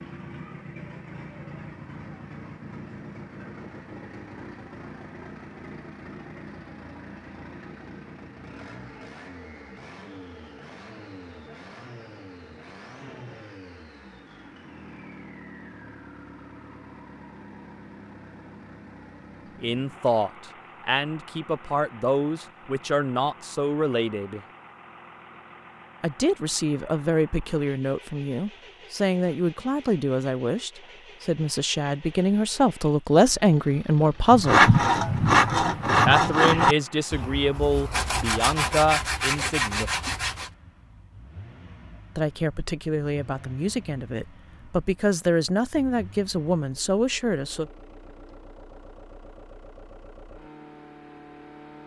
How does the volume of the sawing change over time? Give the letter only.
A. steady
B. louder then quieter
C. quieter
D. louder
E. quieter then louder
E.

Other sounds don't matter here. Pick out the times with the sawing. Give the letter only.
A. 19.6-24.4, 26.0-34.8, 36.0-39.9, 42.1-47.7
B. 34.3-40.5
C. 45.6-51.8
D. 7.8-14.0
B.